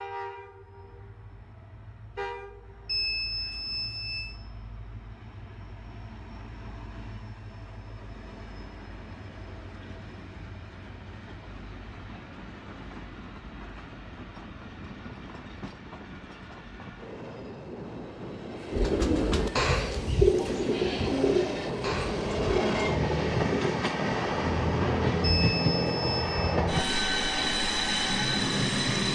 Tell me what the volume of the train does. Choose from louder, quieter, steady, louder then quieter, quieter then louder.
louder.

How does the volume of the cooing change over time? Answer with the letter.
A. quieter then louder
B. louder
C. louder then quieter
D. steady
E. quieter
E.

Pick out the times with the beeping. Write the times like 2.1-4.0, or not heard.
2.9-4.4, 25.2-26.6.